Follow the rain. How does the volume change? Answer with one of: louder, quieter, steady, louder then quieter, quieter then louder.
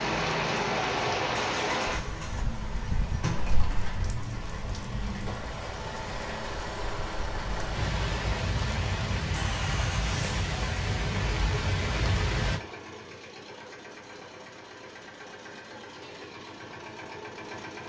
quieter then louder.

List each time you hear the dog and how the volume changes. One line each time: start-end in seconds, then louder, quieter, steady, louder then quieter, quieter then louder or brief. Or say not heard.
not heard.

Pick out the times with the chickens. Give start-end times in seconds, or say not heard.
not heard.